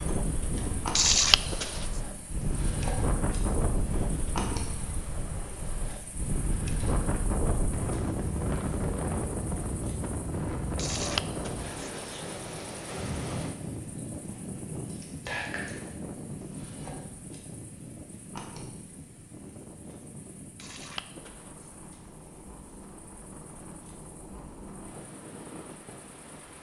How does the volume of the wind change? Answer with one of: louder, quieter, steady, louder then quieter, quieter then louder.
quieter.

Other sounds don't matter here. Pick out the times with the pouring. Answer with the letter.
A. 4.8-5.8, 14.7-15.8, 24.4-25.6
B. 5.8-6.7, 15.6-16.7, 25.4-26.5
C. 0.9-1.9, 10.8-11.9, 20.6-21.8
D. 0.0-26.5
C.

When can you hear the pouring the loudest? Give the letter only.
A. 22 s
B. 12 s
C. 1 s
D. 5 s
C.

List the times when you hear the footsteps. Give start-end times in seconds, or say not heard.
not heard.